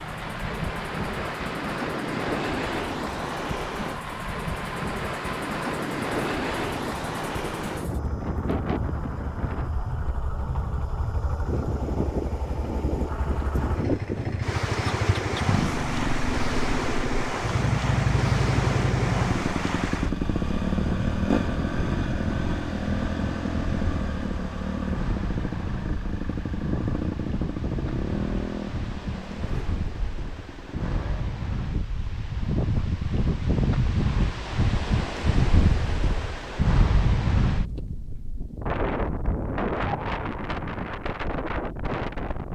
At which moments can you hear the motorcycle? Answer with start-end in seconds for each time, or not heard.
0.0-31.4.